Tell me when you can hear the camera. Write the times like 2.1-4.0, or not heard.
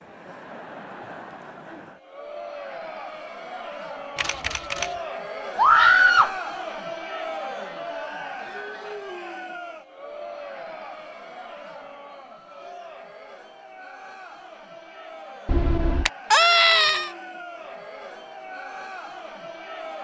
4.2-5.0, 15.4-16.1.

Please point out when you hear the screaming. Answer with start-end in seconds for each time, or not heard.
5.5-6.3, 16.3-17.1.